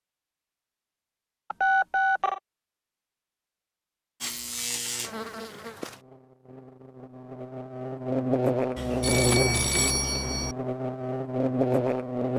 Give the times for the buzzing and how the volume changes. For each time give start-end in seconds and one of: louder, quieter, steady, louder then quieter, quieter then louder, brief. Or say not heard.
4.2-12.3 quieter then louder.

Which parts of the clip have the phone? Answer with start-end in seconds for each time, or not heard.
1.5-2.4, 8.8-10.6.